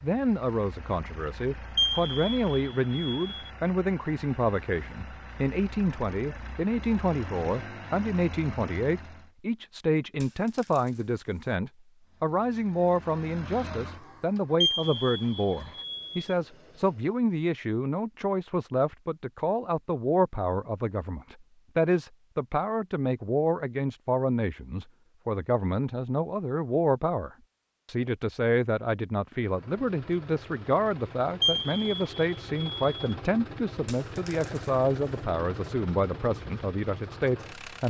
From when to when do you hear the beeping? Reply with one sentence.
The beeping can be heard from 1.8 to 3.5 s, from 14.6 to 16.4 s and from 31.4 to 33.0 s.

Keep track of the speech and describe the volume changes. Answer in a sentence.
The volume of the speech stays about the same.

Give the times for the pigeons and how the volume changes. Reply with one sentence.
The pigeons can't be heard in this clip.